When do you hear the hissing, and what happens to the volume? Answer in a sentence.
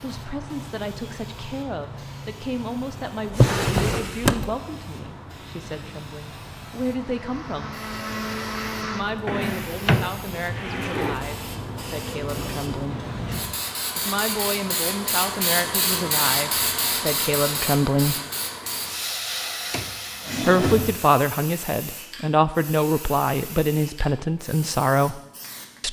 You can hear the hissing from 0.0 to 25.8 s, getting louder then quieter.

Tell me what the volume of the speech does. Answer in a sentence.
The volume of the speech goes up.